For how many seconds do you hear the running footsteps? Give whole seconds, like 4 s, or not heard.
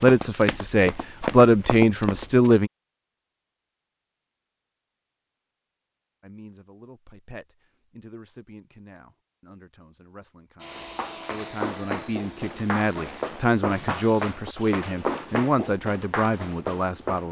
9 s.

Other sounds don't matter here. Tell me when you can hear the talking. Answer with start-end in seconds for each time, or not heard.
0.0-2.7, 6.2-17.2.